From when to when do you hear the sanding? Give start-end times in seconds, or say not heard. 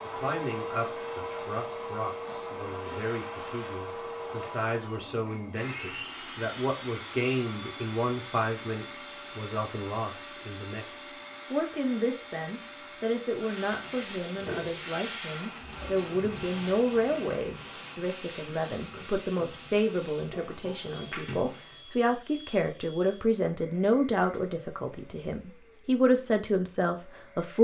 13.3-21.9.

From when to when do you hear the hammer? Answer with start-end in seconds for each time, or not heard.
not heard.